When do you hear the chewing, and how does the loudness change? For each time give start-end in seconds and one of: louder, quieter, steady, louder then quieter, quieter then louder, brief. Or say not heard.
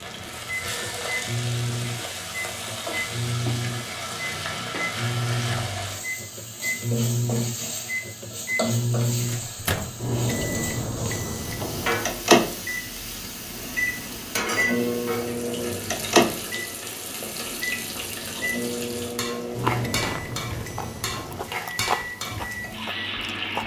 19.4-23.6 louder then quieter.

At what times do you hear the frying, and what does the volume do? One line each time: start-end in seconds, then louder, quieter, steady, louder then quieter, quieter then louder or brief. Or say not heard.
0.0-23.6 steady.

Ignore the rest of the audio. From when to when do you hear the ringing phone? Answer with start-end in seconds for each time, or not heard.
0.6-1.4.